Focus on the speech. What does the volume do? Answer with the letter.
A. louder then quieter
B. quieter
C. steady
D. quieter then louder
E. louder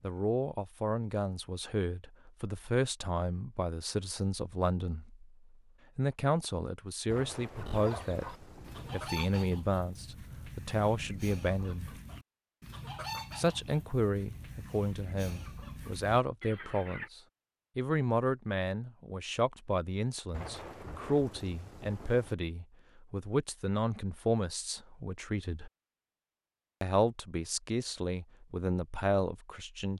C.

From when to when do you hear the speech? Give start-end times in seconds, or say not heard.
0.0-5.3, 6.0-11.9, 13.3-25.7, 26.8-29.9.